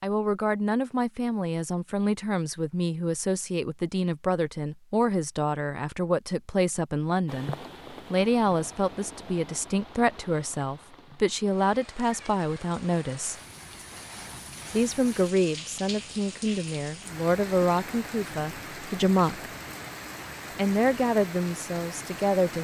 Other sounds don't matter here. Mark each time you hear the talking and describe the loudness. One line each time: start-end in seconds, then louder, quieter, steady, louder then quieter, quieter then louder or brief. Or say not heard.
0.0-13.3 steady
14.7-19.5 steady
20.6-22.5 brief.